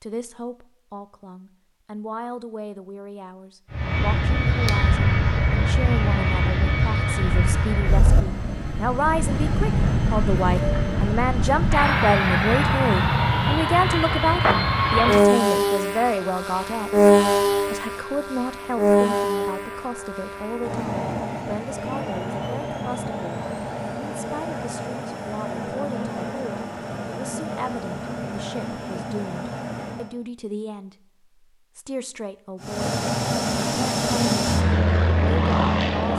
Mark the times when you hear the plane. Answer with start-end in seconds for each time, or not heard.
3.7-30.1, 32.6-36.1.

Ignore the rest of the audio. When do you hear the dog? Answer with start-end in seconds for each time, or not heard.
not heard.